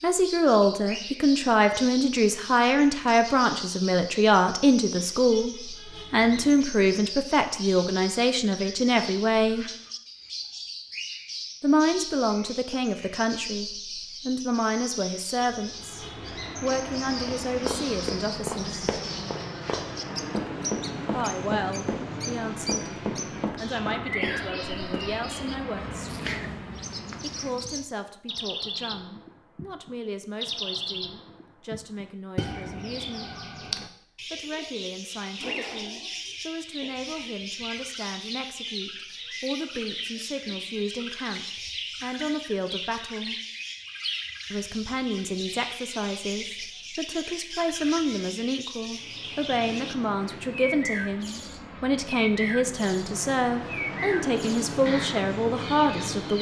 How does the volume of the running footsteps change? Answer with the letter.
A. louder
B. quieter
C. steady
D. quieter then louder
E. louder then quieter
C.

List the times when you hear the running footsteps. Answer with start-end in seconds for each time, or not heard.
17.2-25.2.